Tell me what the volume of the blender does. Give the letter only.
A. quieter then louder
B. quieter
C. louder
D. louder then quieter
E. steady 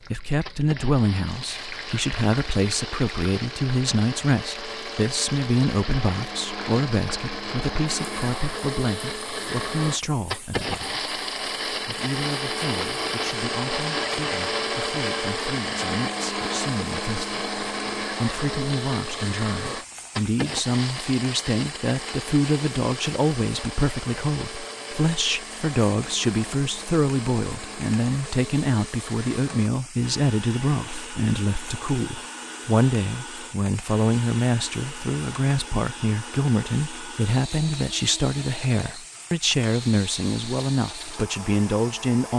D.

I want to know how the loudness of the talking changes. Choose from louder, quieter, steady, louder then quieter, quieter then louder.
quieter then louder.